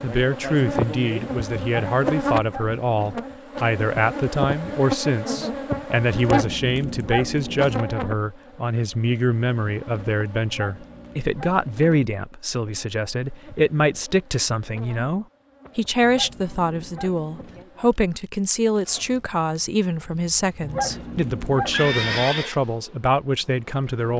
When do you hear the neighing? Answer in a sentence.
The neighing can be heard from 21.7 to 22.6 s.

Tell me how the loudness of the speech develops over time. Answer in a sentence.
The volume of the speech stays about the same.